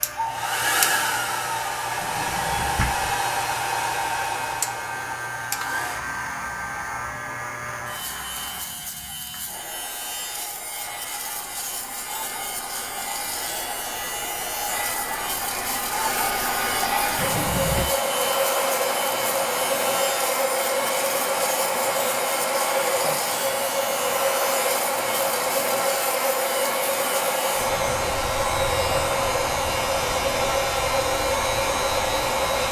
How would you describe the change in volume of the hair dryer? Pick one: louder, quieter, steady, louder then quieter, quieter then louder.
quieter then louder.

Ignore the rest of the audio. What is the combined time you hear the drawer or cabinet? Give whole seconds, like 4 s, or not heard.
2 s.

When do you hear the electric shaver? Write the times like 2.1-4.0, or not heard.
0.0-32.6.